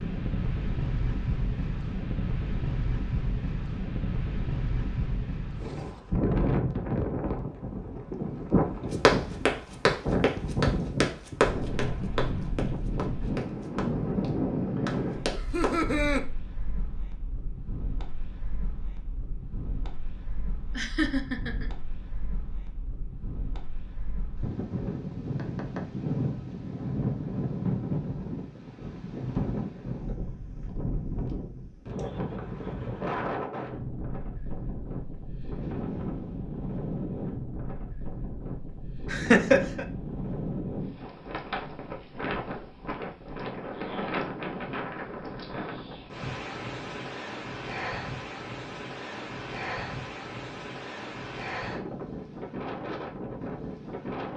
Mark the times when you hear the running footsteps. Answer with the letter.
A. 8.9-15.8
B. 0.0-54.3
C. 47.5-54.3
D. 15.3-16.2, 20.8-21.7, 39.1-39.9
A.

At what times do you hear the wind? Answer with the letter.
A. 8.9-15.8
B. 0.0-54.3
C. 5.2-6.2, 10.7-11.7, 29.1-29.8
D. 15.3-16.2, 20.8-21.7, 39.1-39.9
B.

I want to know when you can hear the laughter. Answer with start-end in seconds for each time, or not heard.
15.3-16.2, 20.8-21.7, 39.1-39.9.